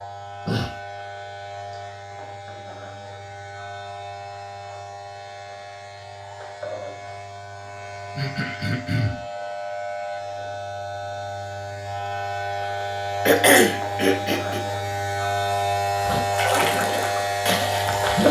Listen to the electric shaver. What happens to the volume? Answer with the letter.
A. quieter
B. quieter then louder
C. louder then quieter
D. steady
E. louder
E.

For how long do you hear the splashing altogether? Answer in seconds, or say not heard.
2 s.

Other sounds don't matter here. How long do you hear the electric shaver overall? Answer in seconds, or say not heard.
18 s.